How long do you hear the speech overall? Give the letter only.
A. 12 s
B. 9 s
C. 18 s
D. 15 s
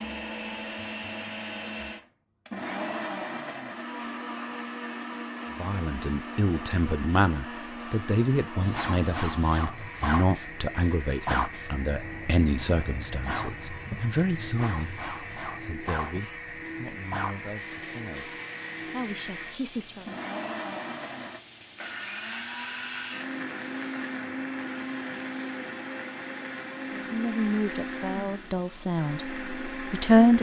C.